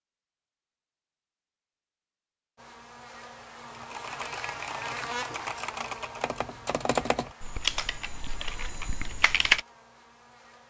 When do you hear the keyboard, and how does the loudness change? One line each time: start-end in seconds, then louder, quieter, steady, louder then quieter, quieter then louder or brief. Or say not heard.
3.7-9.6 louder then quieter.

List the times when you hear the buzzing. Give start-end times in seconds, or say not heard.
2.5-10.6.